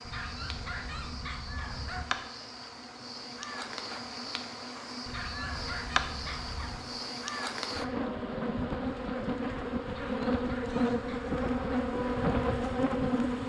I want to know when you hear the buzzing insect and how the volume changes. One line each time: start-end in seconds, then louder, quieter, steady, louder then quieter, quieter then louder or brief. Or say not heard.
0.0-13.4 louder.